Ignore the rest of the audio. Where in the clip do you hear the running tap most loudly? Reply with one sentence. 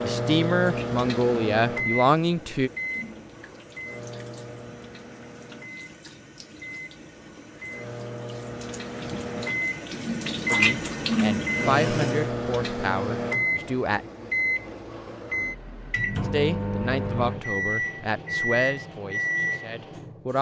The loudest moment of the running tap is at 11 seconds.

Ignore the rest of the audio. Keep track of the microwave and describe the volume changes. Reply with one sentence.
The volume of the microwave goes down, then up.